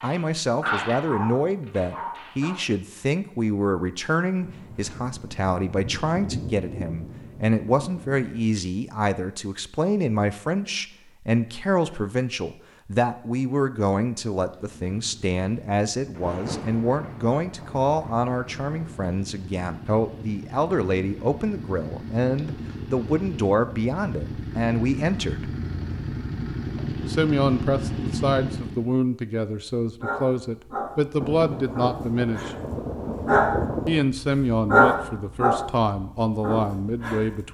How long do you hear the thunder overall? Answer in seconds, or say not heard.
10 s.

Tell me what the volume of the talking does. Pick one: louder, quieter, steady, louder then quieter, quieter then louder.
steady.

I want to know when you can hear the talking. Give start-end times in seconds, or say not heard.
0.0-25.5, 27.1-32.5, 33.9-37.5.